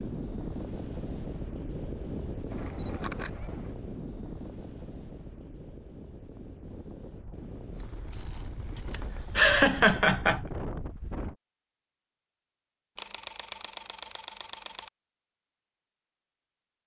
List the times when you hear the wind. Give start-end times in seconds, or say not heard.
0.0-11.3.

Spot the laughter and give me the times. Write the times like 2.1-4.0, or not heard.
8.8-10.4.